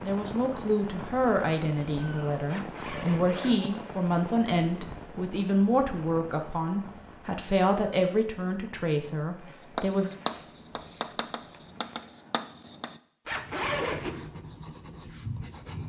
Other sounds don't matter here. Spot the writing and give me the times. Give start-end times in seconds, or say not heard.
9.7-15.8.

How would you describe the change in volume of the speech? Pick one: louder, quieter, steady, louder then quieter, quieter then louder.
steady.